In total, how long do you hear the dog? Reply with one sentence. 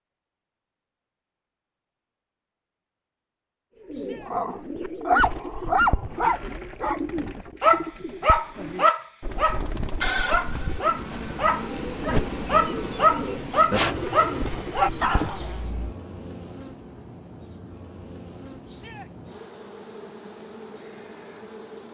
You can hear the dog for 12 seconds altogether.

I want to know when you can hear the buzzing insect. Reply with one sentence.
You can hear the buzzing insect from 10.0 to 21.8 s.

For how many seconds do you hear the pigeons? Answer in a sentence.
You can hear the pigeons for 12 seconds altogether.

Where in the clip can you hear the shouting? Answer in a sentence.
You can hear the shouting from 3.9 to 4.3 s and from 18.6 to 19.1 s.